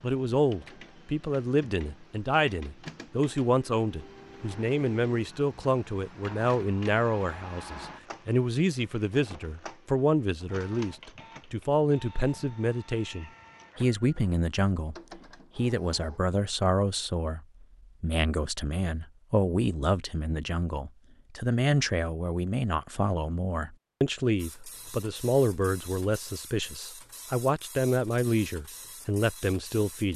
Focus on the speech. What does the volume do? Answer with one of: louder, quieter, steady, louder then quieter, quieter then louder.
steady.